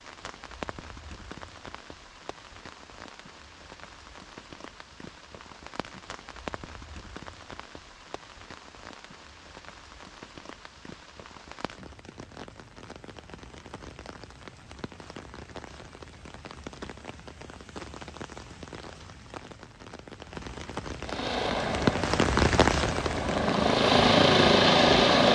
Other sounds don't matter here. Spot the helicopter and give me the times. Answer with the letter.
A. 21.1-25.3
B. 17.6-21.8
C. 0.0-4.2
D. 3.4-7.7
A.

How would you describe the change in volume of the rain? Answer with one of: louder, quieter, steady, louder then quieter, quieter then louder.
louder.